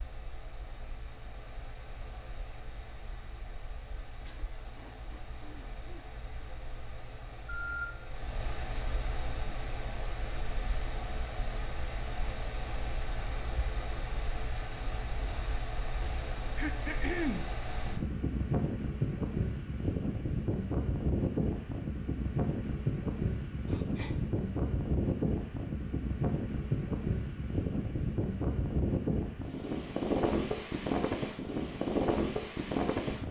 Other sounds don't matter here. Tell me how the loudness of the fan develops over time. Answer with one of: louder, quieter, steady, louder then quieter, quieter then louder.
louder.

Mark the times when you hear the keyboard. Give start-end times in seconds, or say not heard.
not heard.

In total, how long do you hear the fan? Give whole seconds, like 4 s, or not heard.
33 s.